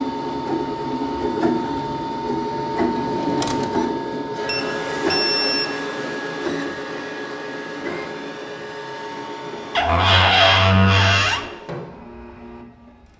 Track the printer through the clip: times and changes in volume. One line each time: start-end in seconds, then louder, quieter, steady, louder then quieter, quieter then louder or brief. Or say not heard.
0.0-13.1 quieter.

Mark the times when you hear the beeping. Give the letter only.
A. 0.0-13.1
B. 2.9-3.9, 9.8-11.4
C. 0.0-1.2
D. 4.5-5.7
D.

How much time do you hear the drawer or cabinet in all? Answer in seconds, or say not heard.
3 s.